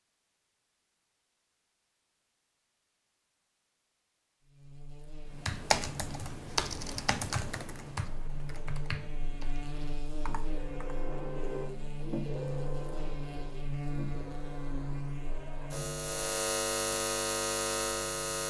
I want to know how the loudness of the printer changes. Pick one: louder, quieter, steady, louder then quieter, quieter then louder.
quieter.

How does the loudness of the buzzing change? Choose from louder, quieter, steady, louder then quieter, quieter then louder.
louder.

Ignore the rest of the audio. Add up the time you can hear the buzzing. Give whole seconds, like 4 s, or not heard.
14 s.